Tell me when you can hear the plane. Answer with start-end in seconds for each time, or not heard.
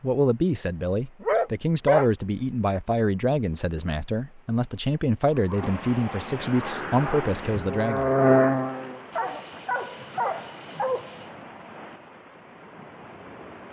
6.5-9.1.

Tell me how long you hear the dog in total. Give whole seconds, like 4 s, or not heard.
5 s.